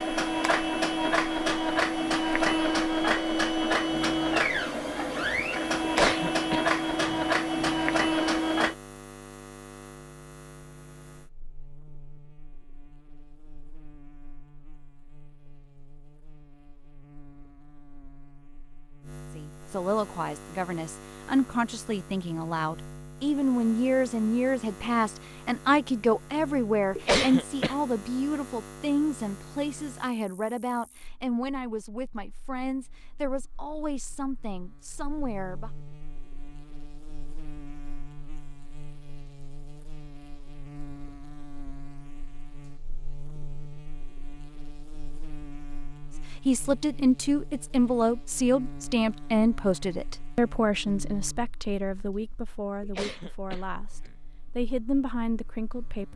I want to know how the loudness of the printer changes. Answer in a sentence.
The volume of the printer stays about the same.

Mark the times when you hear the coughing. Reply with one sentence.
The coughing can be heard from 5.8 to 7.3 s, from 26.9 to 27.8 s and from 52.8 to 54.1 s.